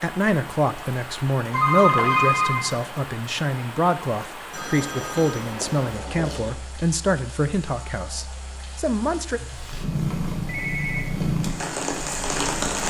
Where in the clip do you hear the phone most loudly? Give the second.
2 s.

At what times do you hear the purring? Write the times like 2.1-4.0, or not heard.
9.6-12.7.